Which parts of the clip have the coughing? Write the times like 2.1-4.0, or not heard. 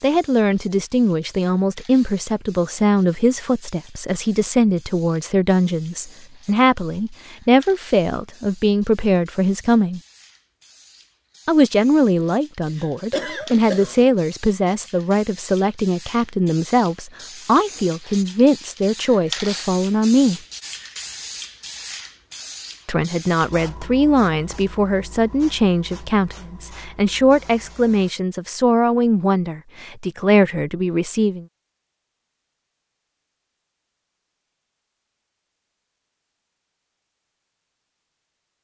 12.8-14.1.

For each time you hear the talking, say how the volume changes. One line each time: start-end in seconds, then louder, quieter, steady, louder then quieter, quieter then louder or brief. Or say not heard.
0.0-10.0 steady
11.4-20.4 steady
22.9-31.4 steady.